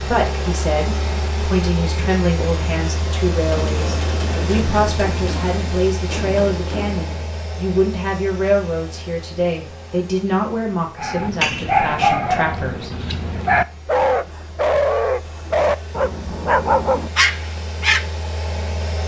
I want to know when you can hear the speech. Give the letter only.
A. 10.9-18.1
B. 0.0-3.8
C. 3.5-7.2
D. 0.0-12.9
D.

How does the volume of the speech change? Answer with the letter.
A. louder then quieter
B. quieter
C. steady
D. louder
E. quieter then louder
C.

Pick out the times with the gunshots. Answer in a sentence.
The gunshots can be heard from 3.5 to 7.2 s.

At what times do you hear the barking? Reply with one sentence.
You can hear the barking from 10.9 to 18.1 s.